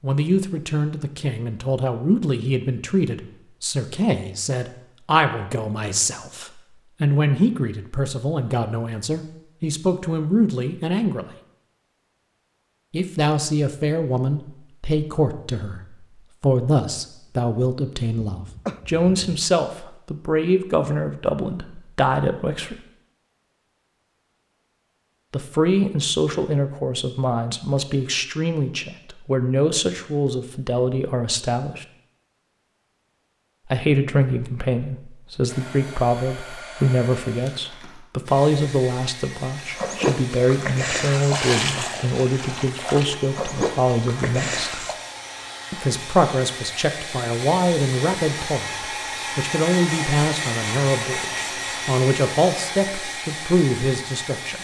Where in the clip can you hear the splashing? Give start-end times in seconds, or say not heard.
39.5-45.0.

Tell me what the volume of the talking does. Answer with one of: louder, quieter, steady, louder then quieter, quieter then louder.
steady.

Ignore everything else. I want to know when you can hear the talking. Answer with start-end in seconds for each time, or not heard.
0.0-11.2, 12.9-22.8, 25.3-31.9, 33.6-44.9, 45.7-54.6.